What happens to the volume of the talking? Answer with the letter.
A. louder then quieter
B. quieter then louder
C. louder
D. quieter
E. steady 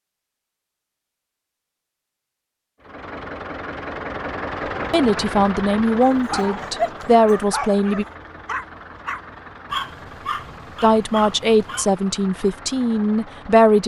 E.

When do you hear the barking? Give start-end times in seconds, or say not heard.
6.1-11.9.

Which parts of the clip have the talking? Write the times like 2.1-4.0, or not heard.
4.9-8.1, 10.8-13.8.